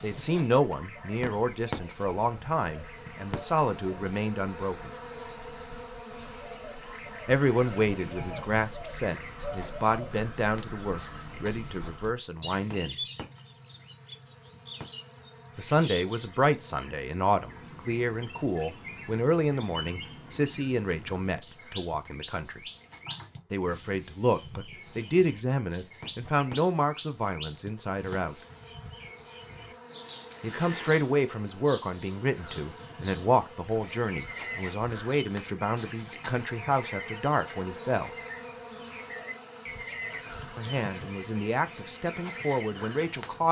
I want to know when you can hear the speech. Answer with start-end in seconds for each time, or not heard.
0.0-4.9, 7.2-12.9, 15.6-22.6, 23.5-28.4, 30.4-38.1, 40.5-43.4.